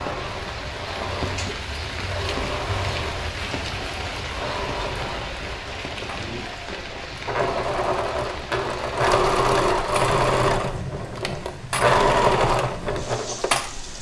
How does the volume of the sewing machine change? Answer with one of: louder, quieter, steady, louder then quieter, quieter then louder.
louder.